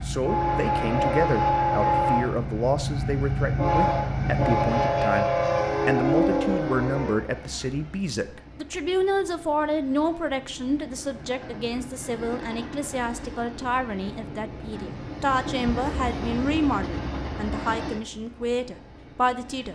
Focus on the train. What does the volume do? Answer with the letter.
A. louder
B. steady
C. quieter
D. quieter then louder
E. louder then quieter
D.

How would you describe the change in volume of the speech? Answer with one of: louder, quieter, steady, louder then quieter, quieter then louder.
steady.